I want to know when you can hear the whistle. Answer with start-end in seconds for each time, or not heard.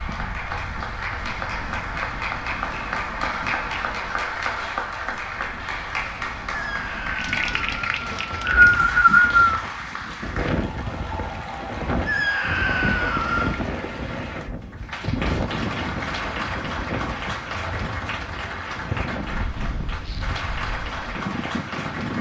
8.1-9.6.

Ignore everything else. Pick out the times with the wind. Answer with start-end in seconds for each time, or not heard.
0.0-22.1.